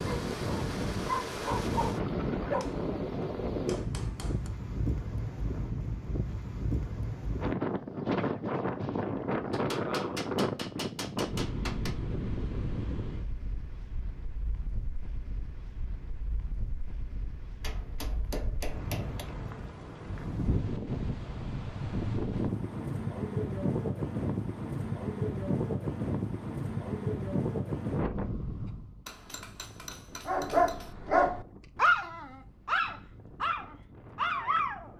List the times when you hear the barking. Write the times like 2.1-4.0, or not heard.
0.0-2.6, 30.2-34.9.